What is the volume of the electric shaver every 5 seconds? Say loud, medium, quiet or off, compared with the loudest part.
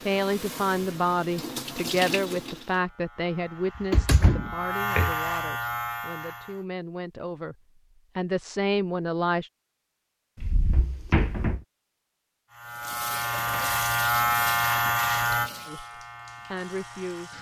medium, medium, loud, medium.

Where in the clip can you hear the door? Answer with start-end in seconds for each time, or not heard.
3.8-5.2, 10.3-11.6.